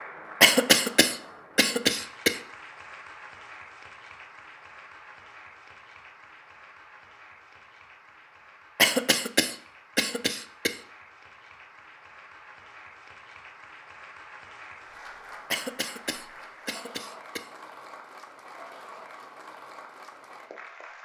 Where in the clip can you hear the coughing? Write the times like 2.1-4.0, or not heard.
0.4-2.4, 8.8-10.8, 15.5-17.4.